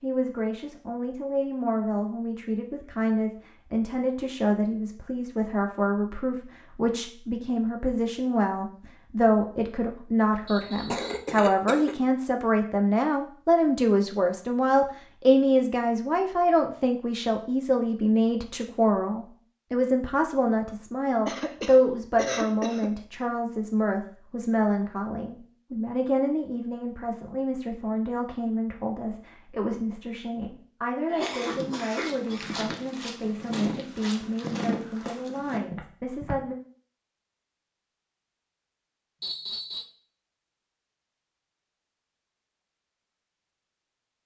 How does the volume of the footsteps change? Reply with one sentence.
The volume of the footsteps goes up, then down.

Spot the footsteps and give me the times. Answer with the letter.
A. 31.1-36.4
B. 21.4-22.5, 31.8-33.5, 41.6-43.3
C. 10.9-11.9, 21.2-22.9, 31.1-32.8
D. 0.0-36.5
A.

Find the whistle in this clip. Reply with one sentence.
You can hear the whistle from 10.4 to 11.2 s and from 39.2 to 39.9 s.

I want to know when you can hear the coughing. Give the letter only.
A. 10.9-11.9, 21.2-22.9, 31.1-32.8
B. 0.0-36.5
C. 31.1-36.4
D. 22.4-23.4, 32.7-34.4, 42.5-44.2
A.